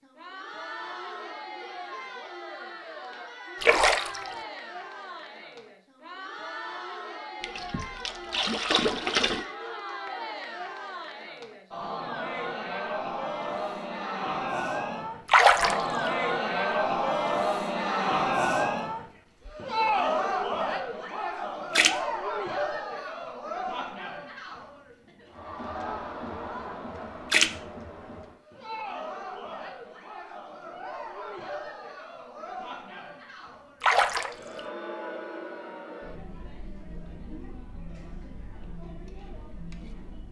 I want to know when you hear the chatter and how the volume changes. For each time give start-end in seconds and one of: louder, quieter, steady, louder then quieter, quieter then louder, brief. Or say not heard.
0.0-40.2 louder then quieter.